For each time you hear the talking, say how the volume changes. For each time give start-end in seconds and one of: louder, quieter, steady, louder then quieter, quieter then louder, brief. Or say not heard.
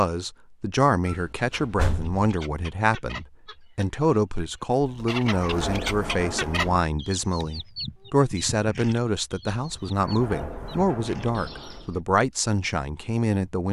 0.0-13.6 steady.